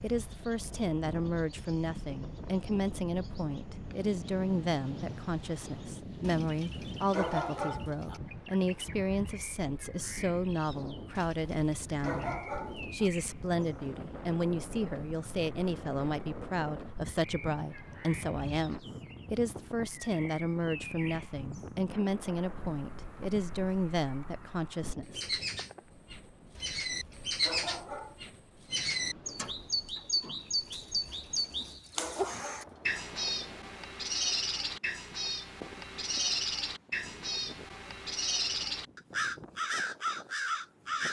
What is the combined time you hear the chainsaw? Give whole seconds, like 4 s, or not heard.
not heard.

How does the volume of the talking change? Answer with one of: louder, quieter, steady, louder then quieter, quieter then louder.
steady.